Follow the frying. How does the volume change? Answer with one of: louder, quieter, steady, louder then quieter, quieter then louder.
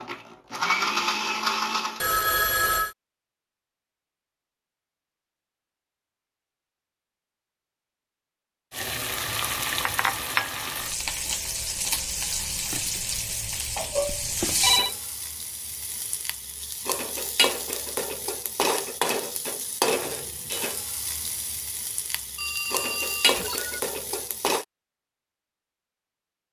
steady.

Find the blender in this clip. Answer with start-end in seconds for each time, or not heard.
0.0-2.0.